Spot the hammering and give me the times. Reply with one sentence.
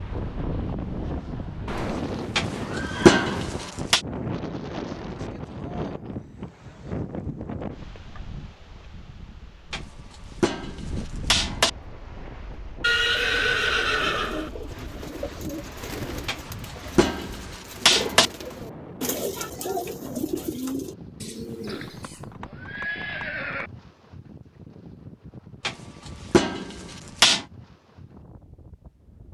The hammering can be heard from 2.4 to 4.0 s, from 9.7 to 11.7 s, from 16.2 to 18.3 s and from 25.6 to 27.4 s.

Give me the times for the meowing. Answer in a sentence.
You can't hear the meowing here.